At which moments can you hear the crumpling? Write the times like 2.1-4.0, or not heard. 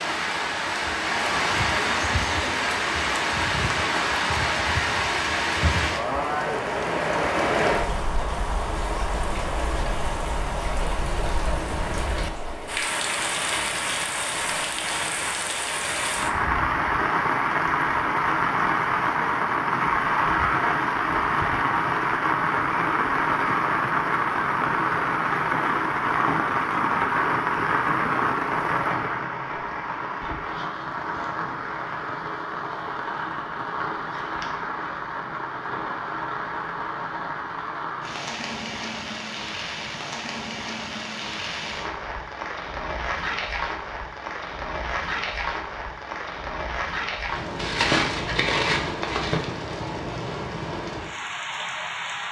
47.5-49.5.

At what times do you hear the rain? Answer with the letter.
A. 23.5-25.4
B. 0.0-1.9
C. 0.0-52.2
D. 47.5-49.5
C.